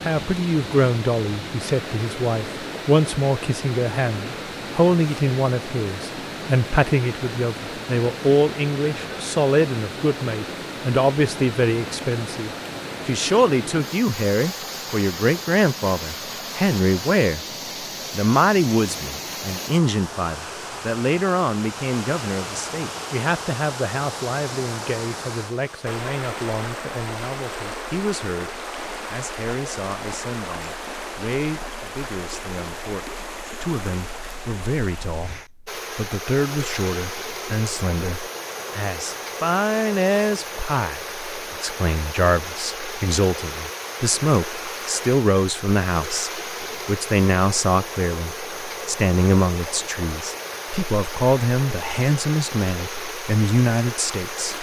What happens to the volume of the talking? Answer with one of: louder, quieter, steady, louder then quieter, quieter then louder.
quieter then louder.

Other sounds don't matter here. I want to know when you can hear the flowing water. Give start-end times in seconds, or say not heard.
0.0-54.5.